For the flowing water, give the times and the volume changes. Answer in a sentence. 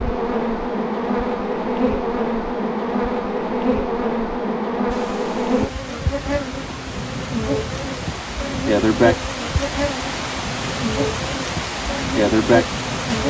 You can hear the flowing water from 4.8 to 13.2 s, getting louder.